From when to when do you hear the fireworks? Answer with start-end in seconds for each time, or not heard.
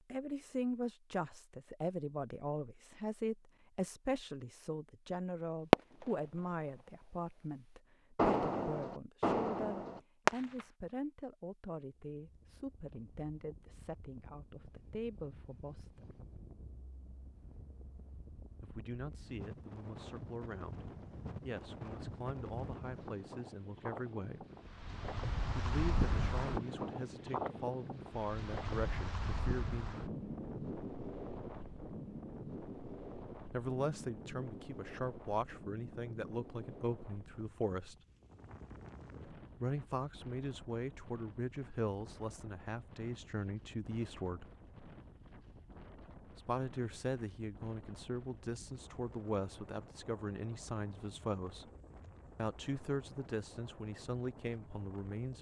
5.7-6.2, 8.2-10.7.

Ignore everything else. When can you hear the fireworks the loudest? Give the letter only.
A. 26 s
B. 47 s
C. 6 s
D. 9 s
C.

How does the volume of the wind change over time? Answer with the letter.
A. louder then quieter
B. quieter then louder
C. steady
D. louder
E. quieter
A.